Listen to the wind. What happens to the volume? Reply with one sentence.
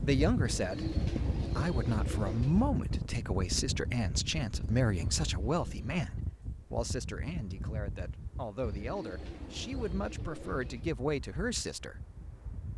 The volume of the wind goes down.